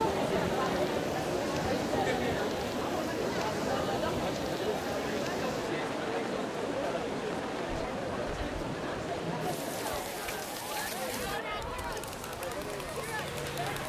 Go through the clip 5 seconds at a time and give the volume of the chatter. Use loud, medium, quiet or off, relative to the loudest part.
loud, loud, medium.